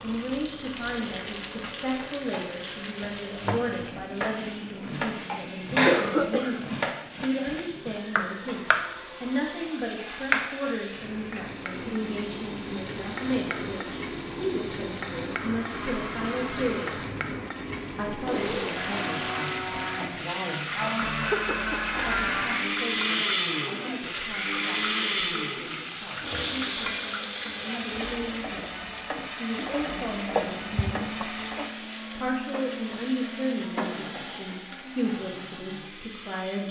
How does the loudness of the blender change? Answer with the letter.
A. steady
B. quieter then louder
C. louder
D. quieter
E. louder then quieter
E.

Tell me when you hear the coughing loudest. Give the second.
6 s.